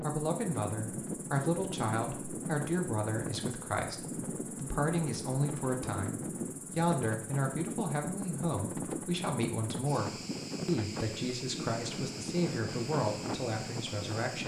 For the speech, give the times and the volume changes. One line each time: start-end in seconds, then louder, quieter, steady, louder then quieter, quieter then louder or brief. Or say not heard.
0.0-14.4 steady.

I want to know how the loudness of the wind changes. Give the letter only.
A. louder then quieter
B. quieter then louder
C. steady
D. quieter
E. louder
C.